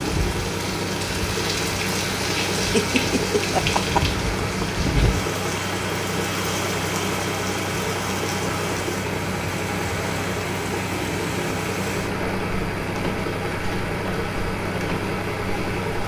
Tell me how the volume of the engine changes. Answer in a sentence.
The volume of the engine stays about the same.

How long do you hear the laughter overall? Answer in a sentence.
You can hear the laughter for 2 seconds altogether.